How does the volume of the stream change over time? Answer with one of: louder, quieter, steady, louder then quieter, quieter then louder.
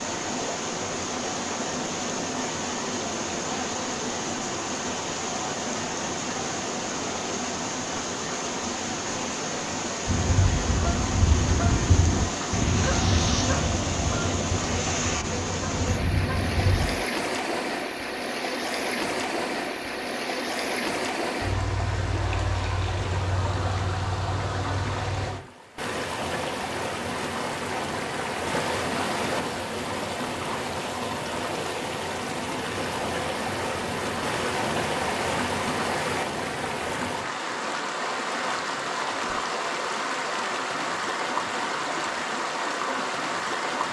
steady.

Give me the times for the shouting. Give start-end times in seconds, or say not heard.
not heard.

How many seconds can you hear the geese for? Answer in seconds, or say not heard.
7 s.